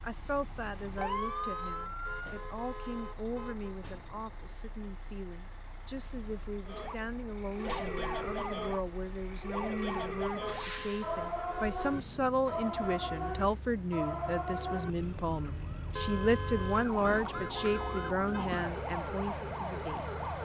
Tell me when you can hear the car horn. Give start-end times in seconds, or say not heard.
0.9-3.7, 10.4-11.8, 15.9-18.5.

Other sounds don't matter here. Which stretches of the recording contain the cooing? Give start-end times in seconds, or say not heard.
not heard.